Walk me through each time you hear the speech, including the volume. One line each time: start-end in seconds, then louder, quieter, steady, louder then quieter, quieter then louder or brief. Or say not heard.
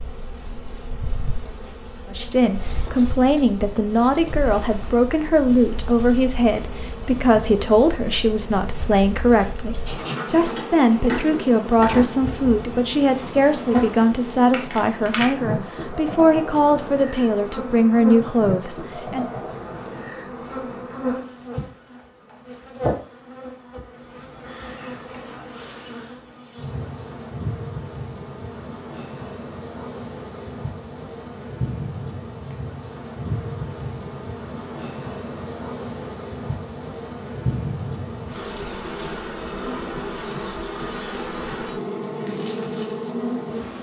2.1-19.2 steady.